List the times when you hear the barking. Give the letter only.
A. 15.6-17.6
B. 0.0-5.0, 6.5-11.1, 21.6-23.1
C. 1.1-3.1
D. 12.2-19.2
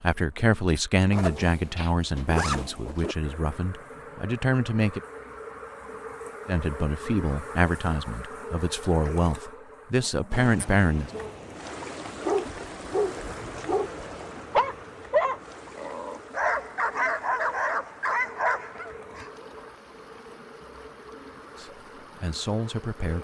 D.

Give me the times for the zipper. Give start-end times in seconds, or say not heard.
1.1-3.1.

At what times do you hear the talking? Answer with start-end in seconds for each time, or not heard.
0.0-5.0, 6.5-11.1, 21.6-23.1.